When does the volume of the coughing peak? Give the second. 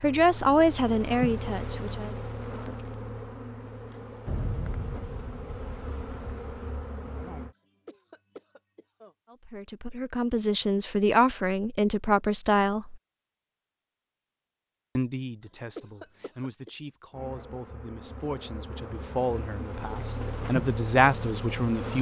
16 s.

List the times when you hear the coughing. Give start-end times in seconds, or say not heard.
7.8-9.2, 15.8-16.7.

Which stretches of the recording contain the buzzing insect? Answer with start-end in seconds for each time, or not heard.
0.0-7.5, 17.1-21.9.